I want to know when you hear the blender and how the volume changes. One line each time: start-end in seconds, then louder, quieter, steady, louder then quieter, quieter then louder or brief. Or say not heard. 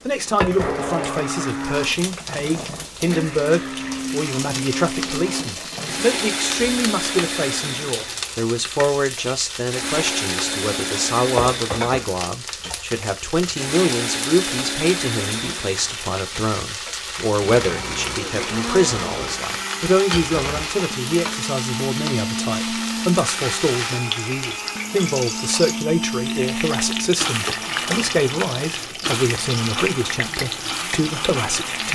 0.0-31.9 steady.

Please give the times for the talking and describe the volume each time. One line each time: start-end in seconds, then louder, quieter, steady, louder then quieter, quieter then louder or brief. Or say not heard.
0.1-31.9 steady.